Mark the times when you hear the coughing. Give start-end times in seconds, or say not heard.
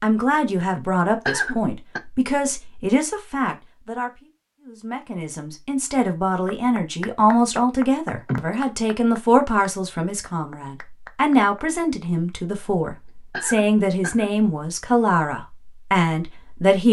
0.6-2.0, 8.1-8.6, 12.7-14.3.